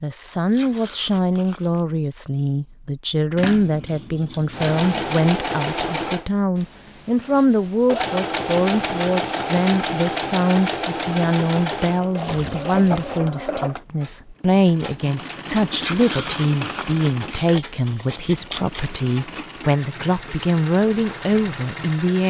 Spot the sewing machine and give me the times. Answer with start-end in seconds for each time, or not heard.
4.5-22.2.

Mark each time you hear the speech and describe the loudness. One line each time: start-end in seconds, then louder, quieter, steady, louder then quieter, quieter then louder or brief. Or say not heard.
0.0-22.2 steady.